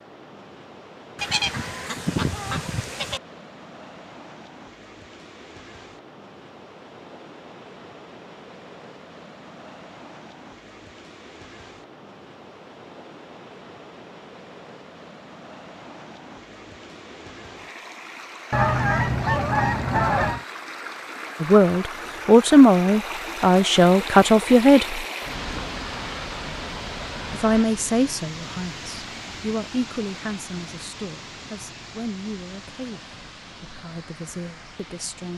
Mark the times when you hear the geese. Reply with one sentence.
The geese can be heard from 1.1 to 3.2 s and from 18.5 to 20.4 s.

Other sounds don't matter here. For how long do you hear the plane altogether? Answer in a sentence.
The plane can't be heard in this clip.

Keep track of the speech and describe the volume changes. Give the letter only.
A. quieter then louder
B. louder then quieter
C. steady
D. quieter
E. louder
D.